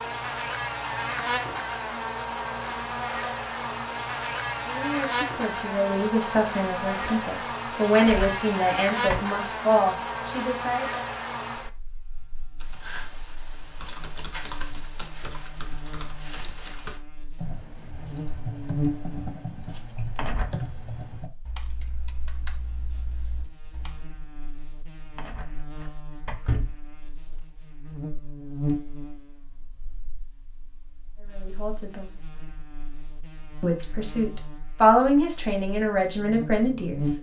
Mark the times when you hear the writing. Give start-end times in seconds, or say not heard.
not heard.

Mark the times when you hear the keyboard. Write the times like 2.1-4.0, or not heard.
12.6-24.1.